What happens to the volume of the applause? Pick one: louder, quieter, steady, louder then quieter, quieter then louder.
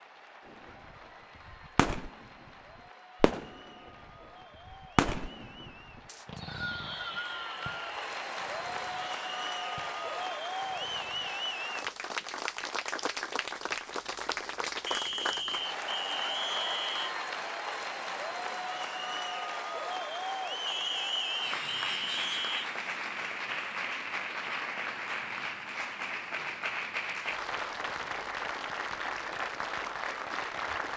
louder.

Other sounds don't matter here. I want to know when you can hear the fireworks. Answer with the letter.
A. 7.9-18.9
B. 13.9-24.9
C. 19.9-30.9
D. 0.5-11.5
D.